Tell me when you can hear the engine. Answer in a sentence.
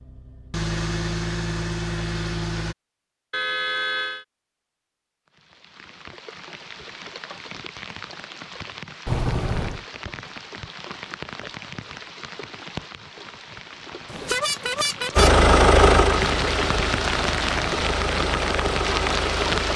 The engine can be heard from 0.0 to 2.8 s and from 15.2 to 19.7 s.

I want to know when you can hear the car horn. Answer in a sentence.
You can hear the car horn from 3.3 to 4.2 s, from 9.1 to 9.8 s and from 14.1 to 15.3 s.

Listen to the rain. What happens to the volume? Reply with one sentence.
The volume of the rain goes up.